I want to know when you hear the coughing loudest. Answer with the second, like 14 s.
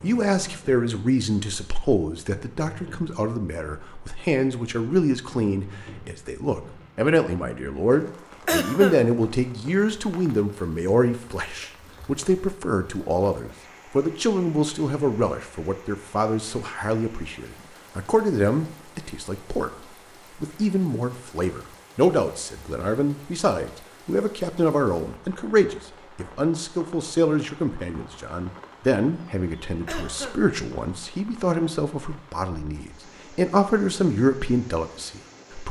9 s.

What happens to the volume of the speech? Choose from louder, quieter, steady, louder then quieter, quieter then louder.
steady.